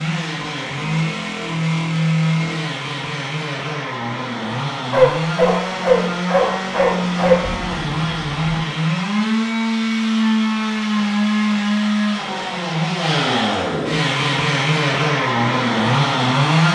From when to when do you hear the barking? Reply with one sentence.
The barking can be heard from 4.9 to 7.4 s.